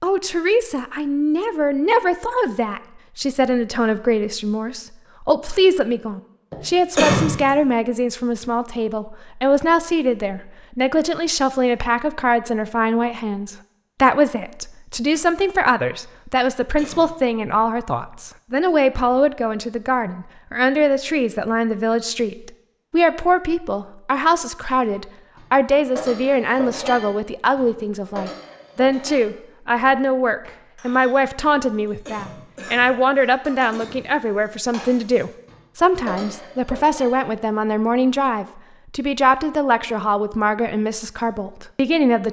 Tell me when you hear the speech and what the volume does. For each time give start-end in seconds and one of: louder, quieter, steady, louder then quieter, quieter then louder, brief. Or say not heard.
0.0-42.2 steady.